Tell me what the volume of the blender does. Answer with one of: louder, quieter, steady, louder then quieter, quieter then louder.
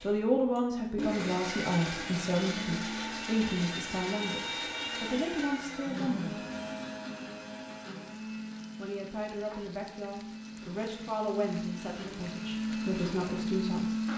quieter then louder.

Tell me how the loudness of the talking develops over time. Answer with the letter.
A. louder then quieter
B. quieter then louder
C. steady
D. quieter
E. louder
D.